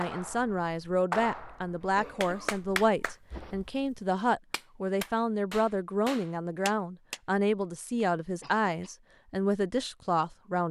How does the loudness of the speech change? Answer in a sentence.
The volume of the speech stays about the same.